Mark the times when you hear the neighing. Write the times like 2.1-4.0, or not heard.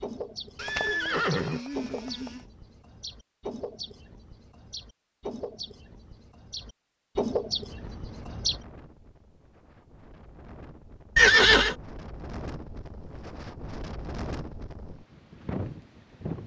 0.6-2.4, 11.2-11.8.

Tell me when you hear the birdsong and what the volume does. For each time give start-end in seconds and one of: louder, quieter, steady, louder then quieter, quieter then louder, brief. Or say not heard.
0.0-8.6 louder.